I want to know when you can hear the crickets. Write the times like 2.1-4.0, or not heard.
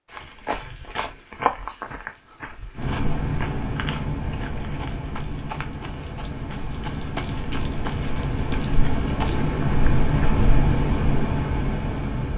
2.8-12.3.